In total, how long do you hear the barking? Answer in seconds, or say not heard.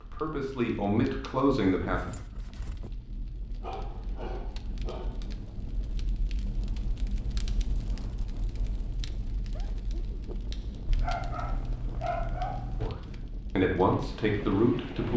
4 s.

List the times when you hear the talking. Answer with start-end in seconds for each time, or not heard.
0.0-2.1, 12.8-15.1.